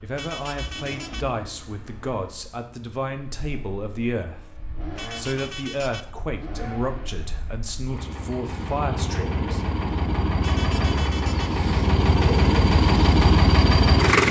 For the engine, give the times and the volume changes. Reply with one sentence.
You can hear the engine from 0.0 to 14.2 s, getting louder.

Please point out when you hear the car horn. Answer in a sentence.
The car horn can be heard from 0.1 to 1.3 s, from 5.0 to 6.1 s and from 10.4 to 11.6 s.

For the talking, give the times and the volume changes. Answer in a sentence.
You can hear the talking from 0.0 to 4.5 s, at a steady volume; and from 5.2 to 9.7 s, getting quieter then louder.